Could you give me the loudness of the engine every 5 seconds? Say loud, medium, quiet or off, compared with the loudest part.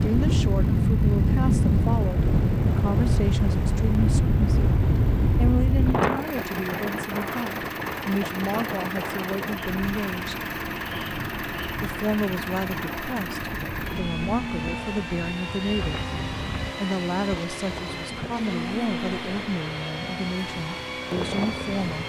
quiet, loud, loud, loud, loud.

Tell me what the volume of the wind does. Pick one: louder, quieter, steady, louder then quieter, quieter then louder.
quieter.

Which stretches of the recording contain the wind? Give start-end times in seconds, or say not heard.
0.0-21.9.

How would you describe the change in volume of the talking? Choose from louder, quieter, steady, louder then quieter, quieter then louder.
steady.